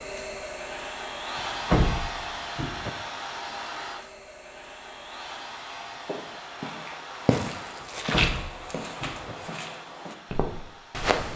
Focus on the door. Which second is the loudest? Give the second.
2 s.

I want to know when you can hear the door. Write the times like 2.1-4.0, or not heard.
1.4-2.9, 7.8-9.3.